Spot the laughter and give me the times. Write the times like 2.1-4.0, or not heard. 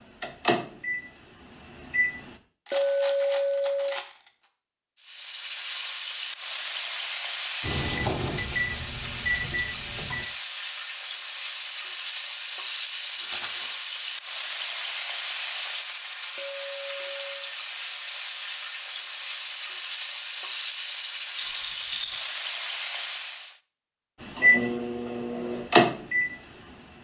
not heard.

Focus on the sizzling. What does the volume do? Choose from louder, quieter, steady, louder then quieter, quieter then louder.
steady.